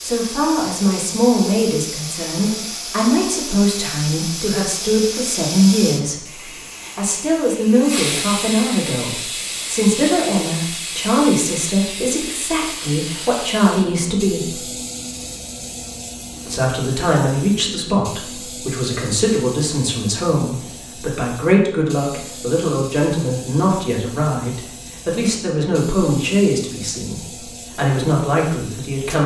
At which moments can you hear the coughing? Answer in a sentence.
You can't hear the coughing here.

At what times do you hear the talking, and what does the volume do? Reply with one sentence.
You can hear the talking from 0.0 to 14.6 s, at a steady volume; and from 16.4 to 29.2 s, at a steady volume.